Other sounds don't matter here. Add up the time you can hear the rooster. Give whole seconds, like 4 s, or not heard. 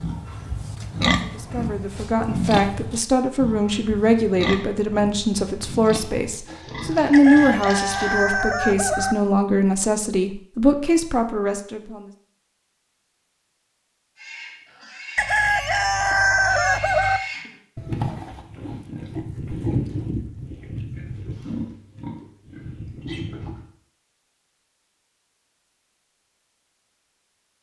4 s.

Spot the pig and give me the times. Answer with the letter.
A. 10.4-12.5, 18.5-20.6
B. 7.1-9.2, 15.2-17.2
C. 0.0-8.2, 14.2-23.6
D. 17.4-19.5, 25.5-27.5
C.